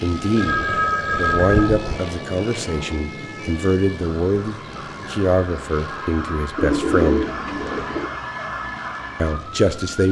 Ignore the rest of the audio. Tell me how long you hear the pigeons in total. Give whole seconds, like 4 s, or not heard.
3 s.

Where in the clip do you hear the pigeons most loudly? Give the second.
7 s.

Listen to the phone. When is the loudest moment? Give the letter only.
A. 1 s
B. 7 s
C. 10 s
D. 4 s
A.